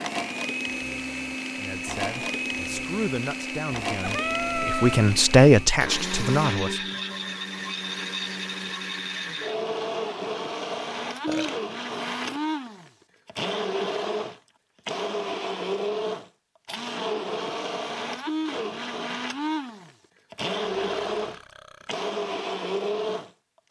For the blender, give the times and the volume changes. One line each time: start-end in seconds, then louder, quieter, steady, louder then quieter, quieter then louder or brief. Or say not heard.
0.0-23.6 steady.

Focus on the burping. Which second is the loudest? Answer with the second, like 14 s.
5 s.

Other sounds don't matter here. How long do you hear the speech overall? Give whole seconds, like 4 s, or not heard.
5 s.